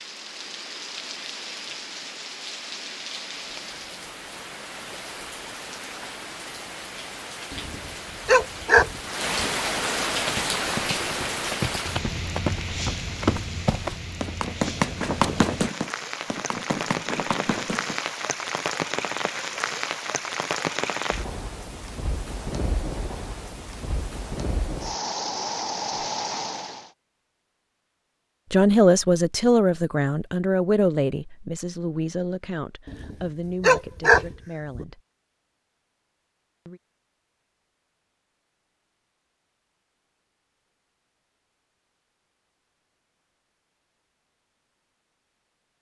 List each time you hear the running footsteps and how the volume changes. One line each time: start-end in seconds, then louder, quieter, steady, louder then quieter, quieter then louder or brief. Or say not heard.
10.2-18.0 louder then quieter.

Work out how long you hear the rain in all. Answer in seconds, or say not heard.
27 s.